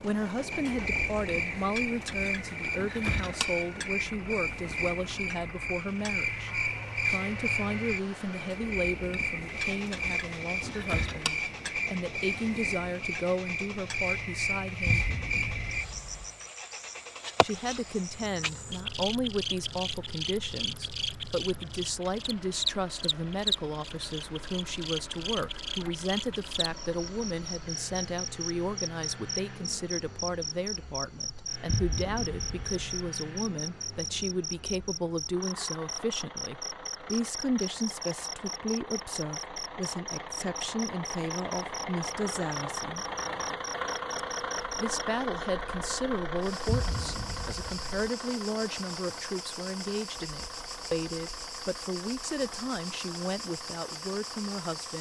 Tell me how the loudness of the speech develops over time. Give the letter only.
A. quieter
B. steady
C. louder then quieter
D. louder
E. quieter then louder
B.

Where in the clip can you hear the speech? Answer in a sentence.
You can hear the speech from 0.0 to 15.1 s, from 17.4 to 43.0 s and from 44.8 to 54.9 s.